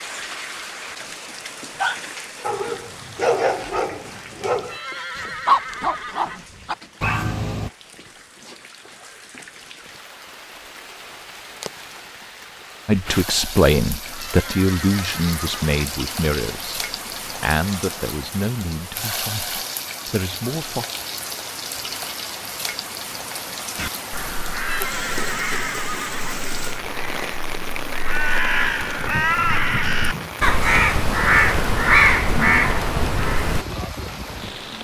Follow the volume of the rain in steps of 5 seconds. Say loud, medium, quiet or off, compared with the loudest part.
medium, quiet, medium, loud, loud, loud, loud.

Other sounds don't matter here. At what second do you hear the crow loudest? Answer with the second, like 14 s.
32 s.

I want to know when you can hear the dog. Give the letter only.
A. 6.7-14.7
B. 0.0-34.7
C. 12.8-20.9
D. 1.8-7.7
D.